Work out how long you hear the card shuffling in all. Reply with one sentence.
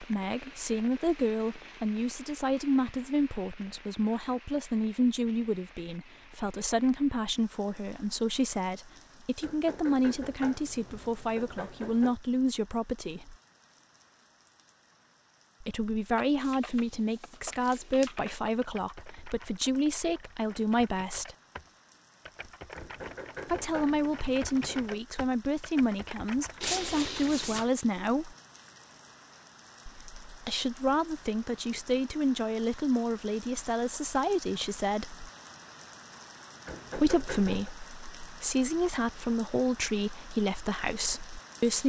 You can hear the card shuffling for 3 seconds altogether.